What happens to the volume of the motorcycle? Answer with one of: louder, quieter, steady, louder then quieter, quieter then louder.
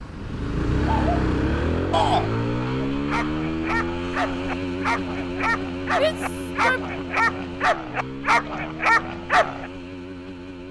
quieter.